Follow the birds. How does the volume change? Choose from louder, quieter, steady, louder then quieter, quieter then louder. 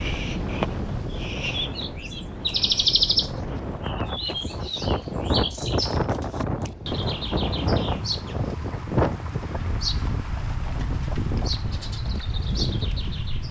quieter.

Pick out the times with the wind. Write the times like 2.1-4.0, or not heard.
0.0-13.4.